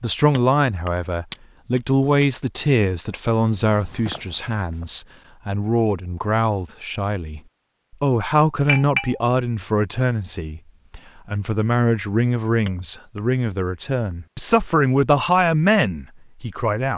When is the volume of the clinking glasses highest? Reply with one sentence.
The loudest moment of the clinking glasses is at 9 seconds.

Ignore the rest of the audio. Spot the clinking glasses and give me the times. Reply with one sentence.
You can hear the clinking glasses from 0.3 to 2.2 s, from 8.7 to 9.2 s and from 12.7 to 13.2 s.